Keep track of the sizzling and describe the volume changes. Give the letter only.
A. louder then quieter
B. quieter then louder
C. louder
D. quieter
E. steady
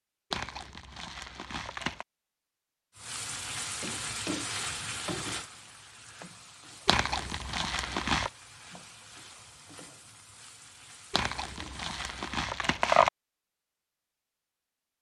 D.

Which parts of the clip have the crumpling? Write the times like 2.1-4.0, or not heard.
0.3-2.0, 6.8-8.3, 11.1-13.1.